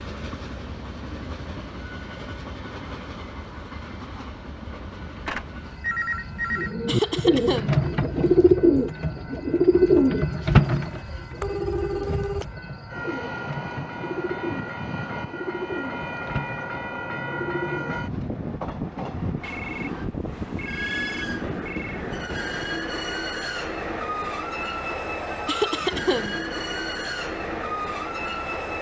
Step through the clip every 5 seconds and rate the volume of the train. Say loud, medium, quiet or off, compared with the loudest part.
medium, medium, medium, loud, loud, loud.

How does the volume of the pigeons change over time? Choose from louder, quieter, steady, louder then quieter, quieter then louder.
quieter.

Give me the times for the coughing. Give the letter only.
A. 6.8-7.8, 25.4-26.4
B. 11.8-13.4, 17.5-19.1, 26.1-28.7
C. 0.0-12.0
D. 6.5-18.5
A.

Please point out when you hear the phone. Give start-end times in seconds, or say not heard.
5.2-6.8, 10.8-12.4, 19.4-22.1.